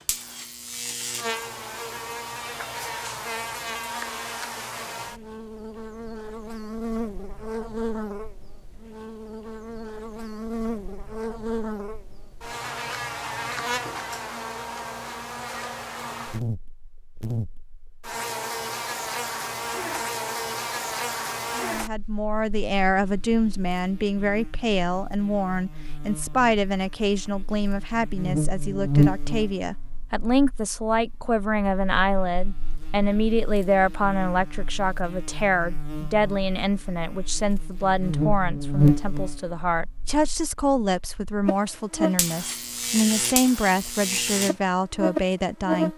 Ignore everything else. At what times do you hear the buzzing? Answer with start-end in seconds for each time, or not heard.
0.0-45.9.